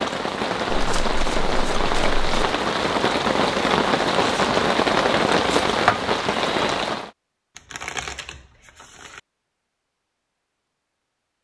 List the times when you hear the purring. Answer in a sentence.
You can't hear the purring here.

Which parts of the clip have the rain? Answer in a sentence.
You can hear the rain from 0.0 to 7.1 s.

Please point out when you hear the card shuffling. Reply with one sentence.
You can hear the card shuffling from 0.7 to 2.5 s and from 7.5 to 9.2 s.